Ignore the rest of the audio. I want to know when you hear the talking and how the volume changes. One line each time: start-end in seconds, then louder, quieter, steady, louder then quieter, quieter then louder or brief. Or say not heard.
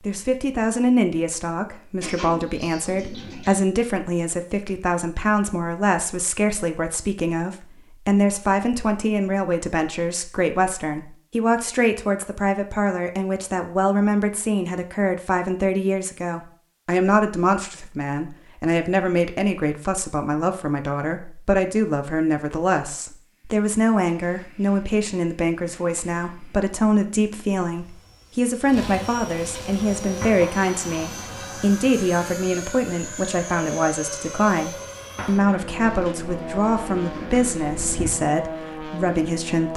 0.1-39.7 steady.